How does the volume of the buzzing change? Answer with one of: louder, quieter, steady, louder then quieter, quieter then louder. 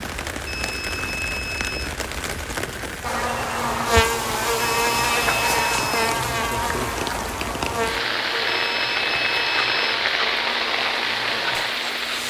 quieter.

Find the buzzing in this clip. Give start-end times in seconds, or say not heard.
3.0-12.2.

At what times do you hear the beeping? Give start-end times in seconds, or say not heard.
0.5-1.9, 4.5-6.0, 8.4-10.0.